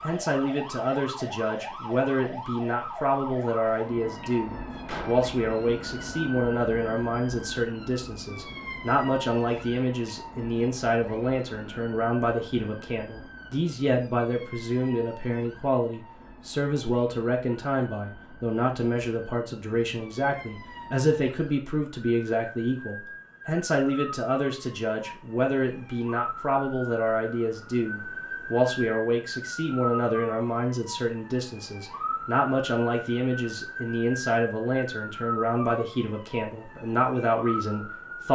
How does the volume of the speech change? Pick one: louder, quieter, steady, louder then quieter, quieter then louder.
steady.